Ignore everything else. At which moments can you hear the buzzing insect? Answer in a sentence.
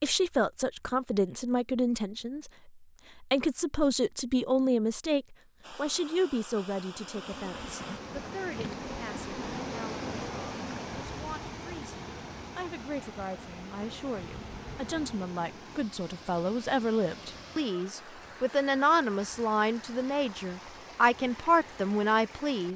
The buzzing insect can be heard from 7.0 to 15.2 s.